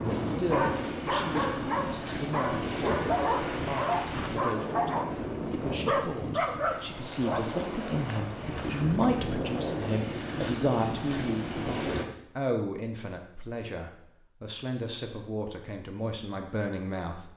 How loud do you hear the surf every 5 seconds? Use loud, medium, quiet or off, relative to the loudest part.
loud, loud, loud, off.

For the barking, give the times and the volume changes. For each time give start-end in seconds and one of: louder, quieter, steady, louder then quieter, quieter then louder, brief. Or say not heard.
0.0-5.0 steady
5.8-7.4 brief.